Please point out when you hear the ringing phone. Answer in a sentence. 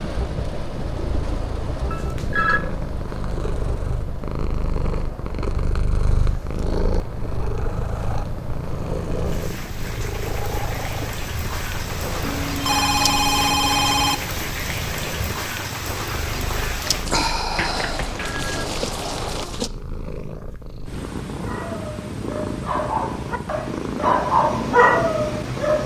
You can hear the ringing phone from 1.9 to 2.6 s, from 12.2 to 14.2 s and from 17.4 to 18.6 s.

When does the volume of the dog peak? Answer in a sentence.
The volume of the dog peaks at 25 seconds.